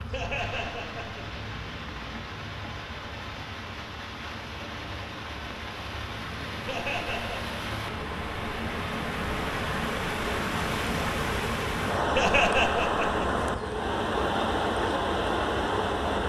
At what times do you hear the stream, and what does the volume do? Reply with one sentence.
You can hear the stream from 0.0 to 16.2 s, getting louder.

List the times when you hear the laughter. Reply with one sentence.
The laughter can be heard from 0.1 to 1.2 s, from 6.7 to 7.5 s and from 12.2 to 13.4 s.